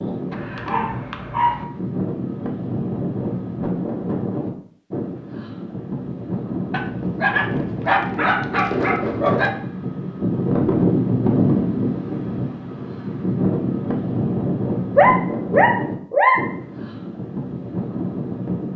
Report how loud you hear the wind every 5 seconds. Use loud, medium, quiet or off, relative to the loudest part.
medium, medium, loud, medium.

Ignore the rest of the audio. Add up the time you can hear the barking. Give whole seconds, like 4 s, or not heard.
6 s.